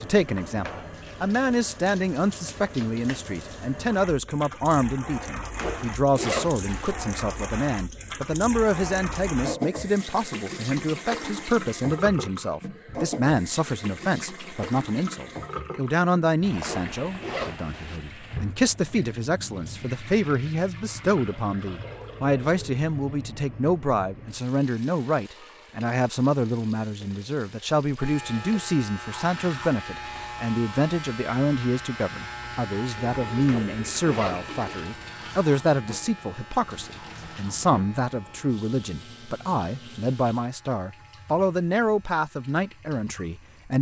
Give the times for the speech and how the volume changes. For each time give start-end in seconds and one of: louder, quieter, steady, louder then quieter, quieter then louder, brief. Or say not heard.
0.0-43.7 steady.